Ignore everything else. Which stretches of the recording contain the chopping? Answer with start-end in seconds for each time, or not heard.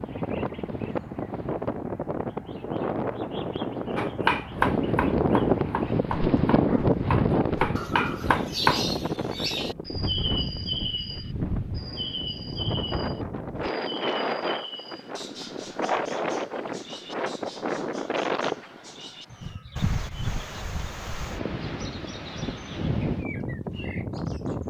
4.0-8.8.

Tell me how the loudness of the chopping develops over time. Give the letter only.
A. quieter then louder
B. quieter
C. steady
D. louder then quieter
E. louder
A.